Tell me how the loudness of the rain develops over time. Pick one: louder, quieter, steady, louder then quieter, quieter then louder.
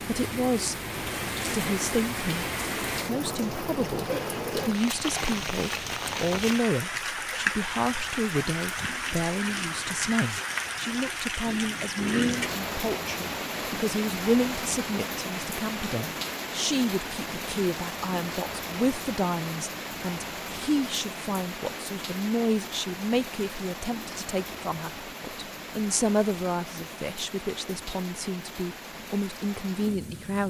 quieter.